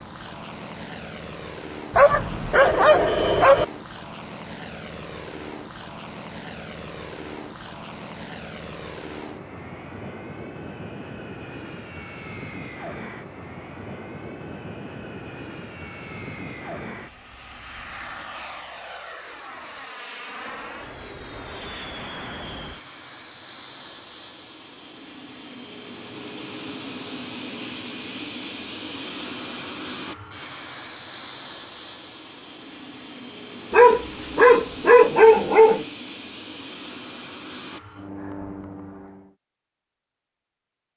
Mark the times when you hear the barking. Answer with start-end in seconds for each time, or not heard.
1.9-3.6, 33.7-35.9.